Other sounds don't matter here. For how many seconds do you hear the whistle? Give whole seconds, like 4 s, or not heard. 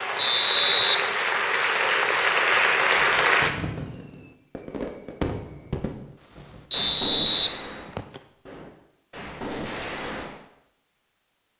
2 s.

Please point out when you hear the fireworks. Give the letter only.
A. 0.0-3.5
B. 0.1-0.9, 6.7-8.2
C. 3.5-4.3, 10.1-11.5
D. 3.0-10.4
D.